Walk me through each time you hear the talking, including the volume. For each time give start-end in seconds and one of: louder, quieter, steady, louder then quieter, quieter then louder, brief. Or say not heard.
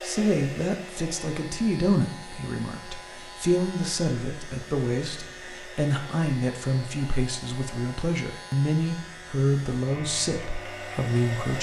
0.0-11.5 steady.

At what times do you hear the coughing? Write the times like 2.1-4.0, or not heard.
not heard.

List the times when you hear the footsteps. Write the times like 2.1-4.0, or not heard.
not heard.